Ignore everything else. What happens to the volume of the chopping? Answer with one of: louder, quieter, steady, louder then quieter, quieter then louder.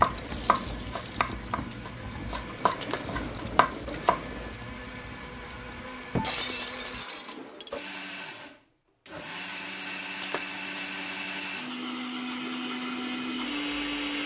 quieter then louder.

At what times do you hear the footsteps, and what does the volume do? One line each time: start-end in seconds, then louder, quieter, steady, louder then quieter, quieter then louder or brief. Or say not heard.
not heard.